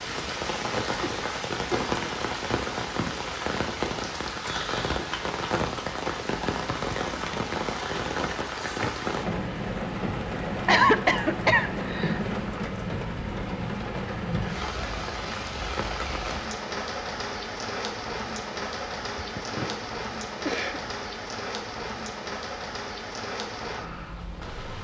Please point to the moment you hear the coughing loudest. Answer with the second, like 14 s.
11 s.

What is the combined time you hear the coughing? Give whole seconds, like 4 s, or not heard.
4 s.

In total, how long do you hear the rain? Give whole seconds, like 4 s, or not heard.
25 s.